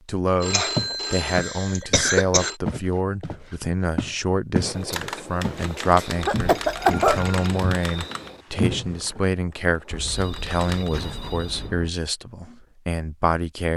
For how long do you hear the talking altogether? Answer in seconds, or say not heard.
14 s.